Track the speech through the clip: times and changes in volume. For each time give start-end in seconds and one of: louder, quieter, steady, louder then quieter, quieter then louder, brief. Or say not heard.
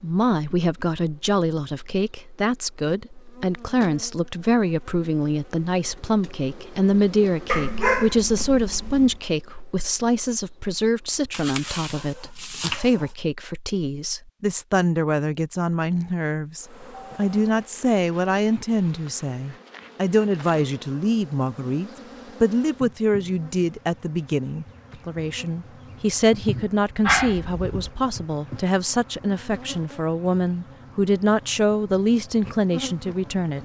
0.0-33.6 steady.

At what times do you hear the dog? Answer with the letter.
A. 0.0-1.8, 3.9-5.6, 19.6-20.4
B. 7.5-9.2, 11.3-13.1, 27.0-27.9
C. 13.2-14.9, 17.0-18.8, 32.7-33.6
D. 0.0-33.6
B.